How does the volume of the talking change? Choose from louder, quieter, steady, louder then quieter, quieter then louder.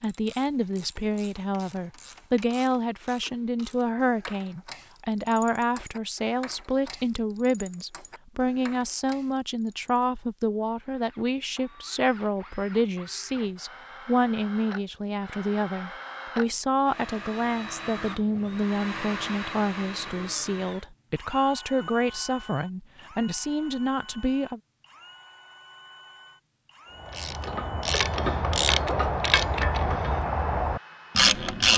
steady.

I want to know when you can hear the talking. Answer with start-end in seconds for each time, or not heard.
0.0-24.6.